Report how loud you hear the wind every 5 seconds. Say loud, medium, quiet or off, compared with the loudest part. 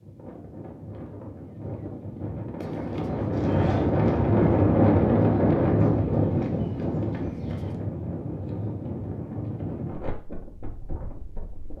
loud, loud, quiet.